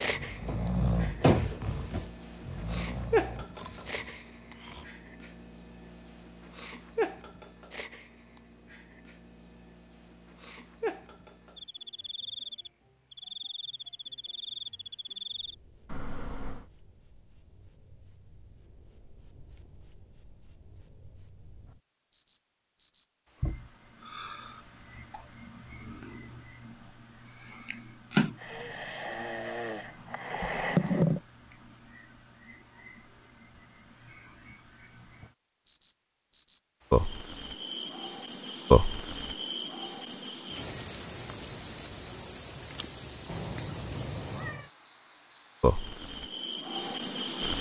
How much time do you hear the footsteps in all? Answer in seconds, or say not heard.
not heard.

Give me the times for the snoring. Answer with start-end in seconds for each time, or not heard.
0.0-4.8, 28.4-31.2.